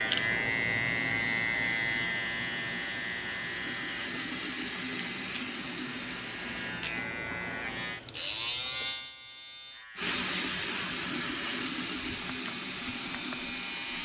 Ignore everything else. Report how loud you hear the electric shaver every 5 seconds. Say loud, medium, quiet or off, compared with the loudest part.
loud, medium, medium.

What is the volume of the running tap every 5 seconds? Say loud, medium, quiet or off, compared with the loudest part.
medium, medium, loud.